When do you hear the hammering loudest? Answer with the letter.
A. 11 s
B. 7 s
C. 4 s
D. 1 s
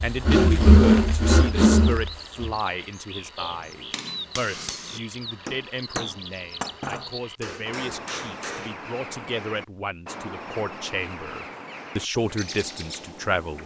B.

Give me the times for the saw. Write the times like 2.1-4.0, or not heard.
0.1-2.6.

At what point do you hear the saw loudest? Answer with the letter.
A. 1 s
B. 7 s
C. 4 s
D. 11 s
A.